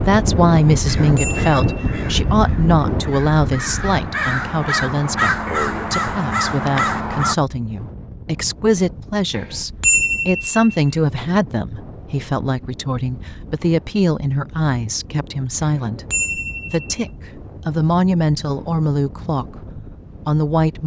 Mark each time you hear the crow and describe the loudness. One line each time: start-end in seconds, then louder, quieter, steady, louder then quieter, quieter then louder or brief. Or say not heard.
0.0-7.3 louder.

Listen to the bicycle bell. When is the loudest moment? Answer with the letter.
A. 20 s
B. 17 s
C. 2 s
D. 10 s
D.